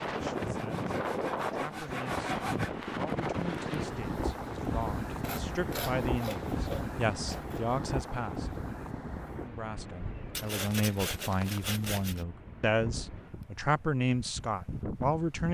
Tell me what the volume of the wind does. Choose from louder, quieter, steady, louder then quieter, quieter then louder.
quieter.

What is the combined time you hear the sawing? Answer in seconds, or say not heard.
7 s.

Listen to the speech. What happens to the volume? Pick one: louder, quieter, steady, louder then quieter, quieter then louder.
louder.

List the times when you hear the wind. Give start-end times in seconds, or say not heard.
0.0-15.4.